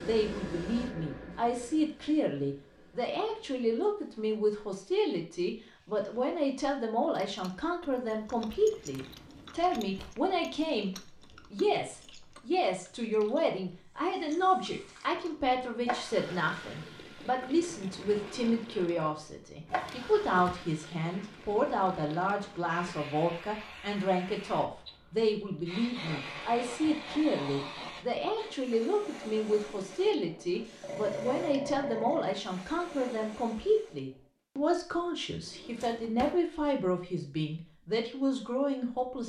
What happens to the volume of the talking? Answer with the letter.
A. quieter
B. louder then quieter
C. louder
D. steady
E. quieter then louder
D.